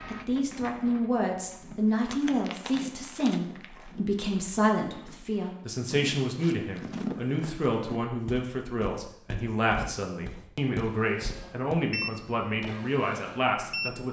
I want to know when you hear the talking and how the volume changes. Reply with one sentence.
You can hear the talking from 0.1 to 14.0 s, at a steady volume.